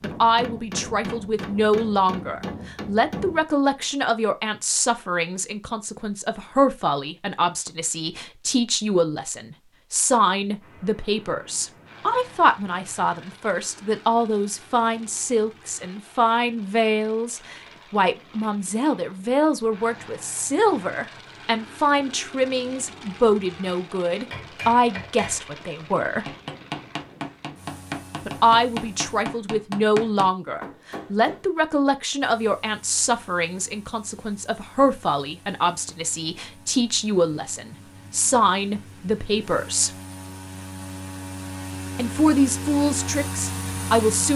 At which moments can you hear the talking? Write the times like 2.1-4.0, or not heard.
0.0-26.3, 28.2-40.0, 42.0-44.3.